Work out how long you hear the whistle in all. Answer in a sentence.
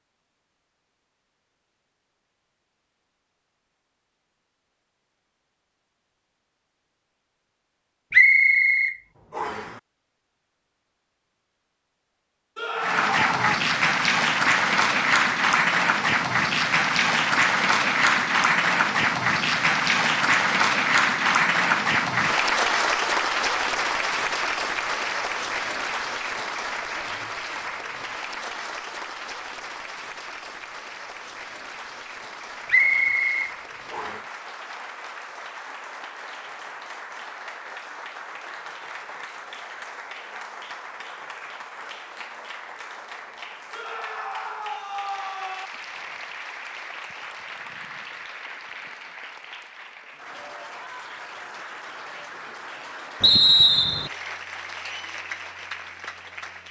The whistle can be heard for 4 seconds in total.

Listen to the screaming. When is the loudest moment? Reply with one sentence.
The volume of the screaming peaks at 13 seconds.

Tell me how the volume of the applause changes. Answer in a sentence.
The volume of the applause goes down.